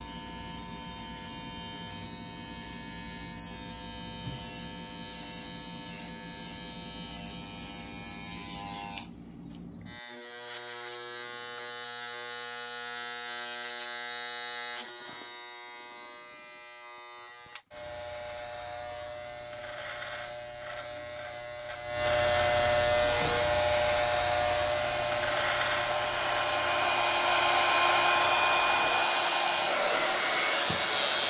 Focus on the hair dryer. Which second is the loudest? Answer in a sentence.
The loudest moment of the hair dryer is at 28 seconds.